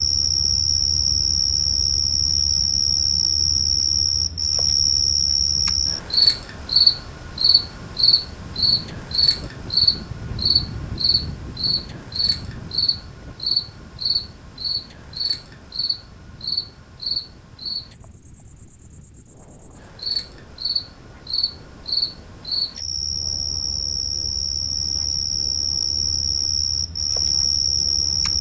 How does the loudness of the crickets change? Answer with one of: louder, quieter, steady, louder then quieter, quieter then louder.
quieter then louder.